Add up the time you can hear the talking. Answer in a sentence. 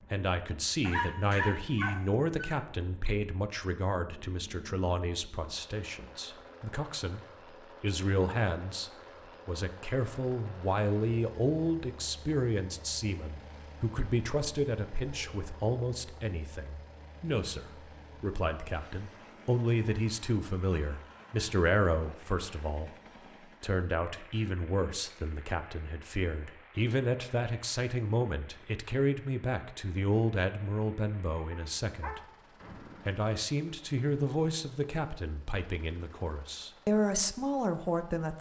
The talking can be heard for 36 seconds in total.